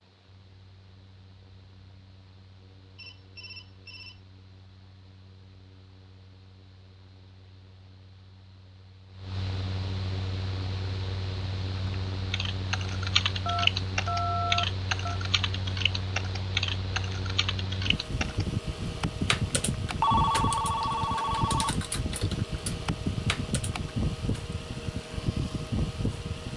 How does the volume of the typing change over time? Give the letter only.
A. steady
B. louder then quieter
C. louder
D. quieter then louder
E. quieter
E.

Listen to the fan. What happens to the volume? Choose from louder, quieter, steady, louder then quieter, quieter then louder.
louder.